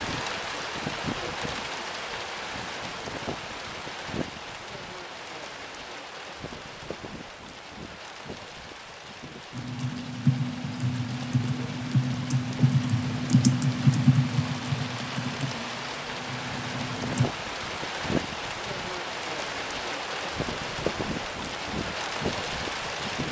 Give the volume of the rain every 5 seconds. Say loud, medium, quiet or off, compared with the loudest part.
loud, medium, medium, loud, loud.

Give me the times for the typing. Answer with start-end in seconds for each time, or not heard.
9.6-17.3.